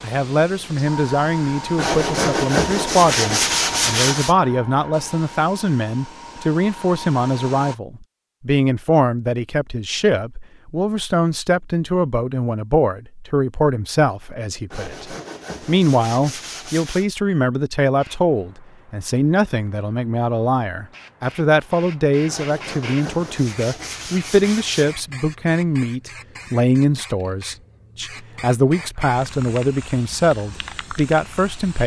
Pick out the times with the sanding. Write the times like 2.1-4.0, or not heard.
1.8-4.3, 14.7-17.1, 22.2-24.9.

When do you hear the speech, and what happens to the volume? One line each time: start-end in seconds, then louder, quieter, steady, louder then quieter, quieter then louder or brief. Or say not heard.
0.0-31.8 steady.